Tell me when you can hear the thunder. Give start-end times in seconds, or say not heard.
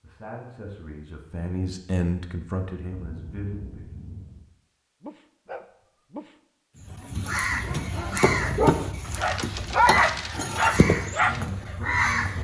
3.0-4.4.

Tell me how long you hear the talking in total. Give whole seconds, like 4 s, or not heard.
5 s.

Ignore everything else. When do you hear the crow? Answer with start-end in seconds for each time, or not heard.
6.8-12.3.